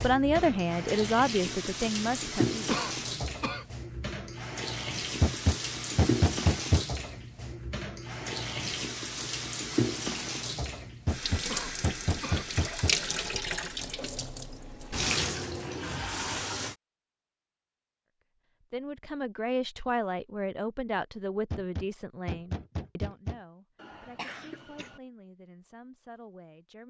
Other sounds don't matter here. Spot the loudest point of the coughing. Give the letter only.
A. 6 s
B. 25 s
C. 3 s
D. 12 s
C.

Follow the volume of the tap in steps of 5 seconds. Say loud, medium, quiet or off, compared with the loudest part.
loud, loud, loud, loud, off, off.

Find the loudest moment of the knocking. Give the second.
6 s.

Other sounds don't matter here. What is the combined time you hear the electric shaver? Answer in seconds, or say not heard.
not heard.